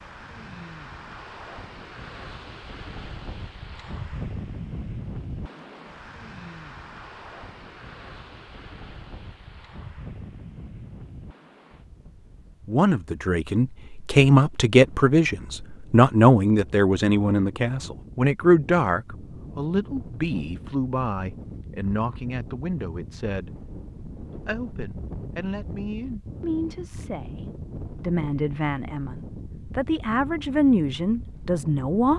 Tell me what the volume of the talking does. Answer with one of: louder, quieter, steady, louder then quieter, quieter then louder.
quieter then louder.